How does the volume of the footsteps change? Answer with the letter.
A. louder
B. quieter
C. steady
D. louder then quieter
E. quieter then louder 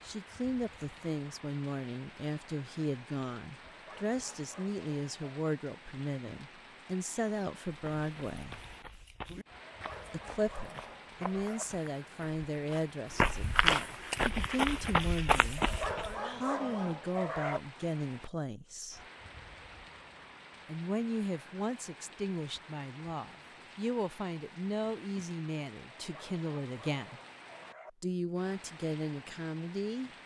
A.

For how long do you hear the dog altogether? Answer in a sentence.
The dog can be heard for 8 seconds in total.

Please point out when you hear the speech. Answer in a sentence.
The speech can be heard from 0.1 to 8.6 s, from 10.1 to 19.0 s, from 20.6 to 27.2 s and from 28.0 to 30.1 s.